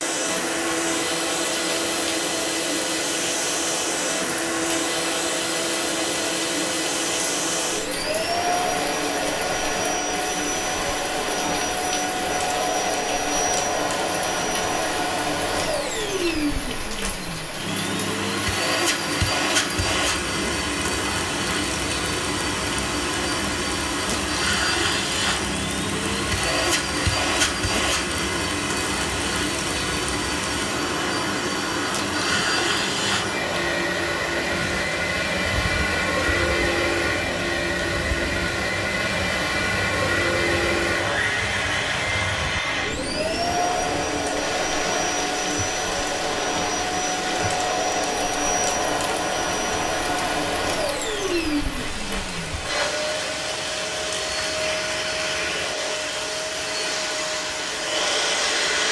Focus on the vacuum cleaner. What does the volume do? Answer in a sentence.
The loudness of the vacuum cleaner stays about the same.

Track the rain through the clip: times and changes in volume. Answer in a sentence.
You can hear the rain from 0.2 to 58.8 s, at a steady volume.